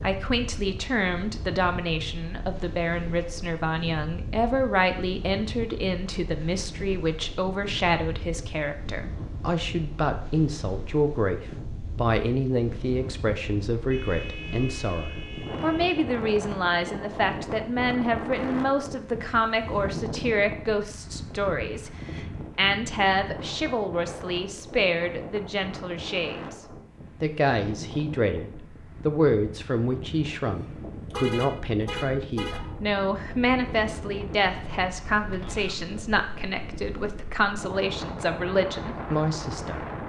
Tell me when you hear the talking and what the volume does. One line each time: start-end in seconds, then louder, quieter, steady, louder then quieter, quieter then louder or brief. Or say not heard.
0.0-39.9 steady.